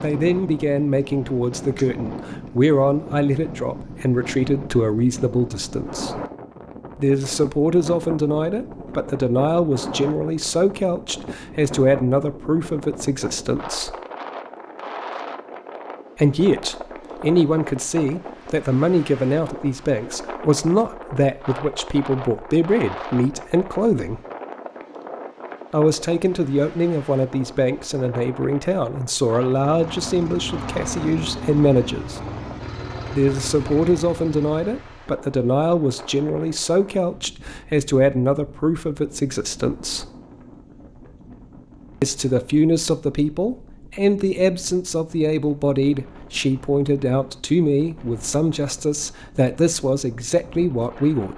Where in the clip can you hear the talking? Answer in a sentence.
You can hear the talking from 0.0 to 6.2 s, from 7.0 to 13.9 s, from 16.1 to 24.2 s, from 25.7 to 32.2 s, from 33.1 to 40.0 s and from 42.0 to 51.3 s.